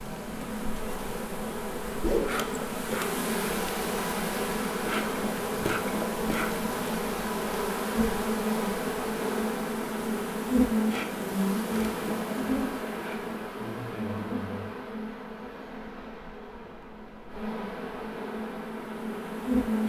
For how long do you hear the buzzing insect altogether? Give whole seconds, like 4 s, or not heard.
20 s.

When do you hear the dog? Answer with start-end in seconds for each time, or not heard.
not heard.